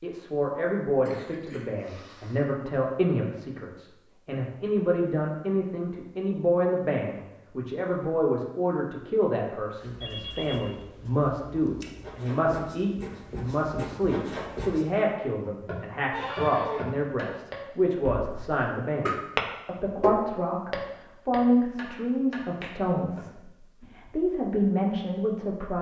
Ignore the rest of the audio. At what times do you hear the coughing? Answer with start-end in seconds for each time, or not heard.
1.0-2.4, 16.1-16.9.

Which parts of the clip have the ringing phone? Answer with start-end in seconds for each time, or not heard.
9.9-10.7.